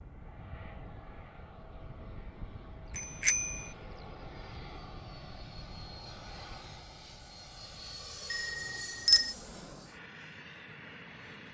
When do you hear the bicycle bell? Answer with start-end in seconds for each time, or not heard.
3.0-3.6, 8.3-9.3.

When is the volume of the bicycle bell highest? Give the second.
9 s.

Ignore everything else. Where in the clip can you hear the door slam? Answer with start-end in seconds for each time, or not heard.
not heard.